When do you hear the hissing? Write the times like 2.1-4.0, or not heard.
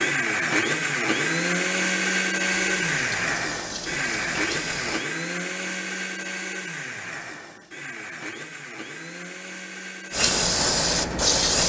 2.5-5.0, 10.1-11.6.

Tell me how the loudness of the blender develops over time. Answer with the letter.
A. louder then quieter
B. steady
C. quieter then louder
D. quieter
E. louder
D.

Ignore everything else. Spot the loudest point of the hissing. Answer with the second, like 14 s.
11 s.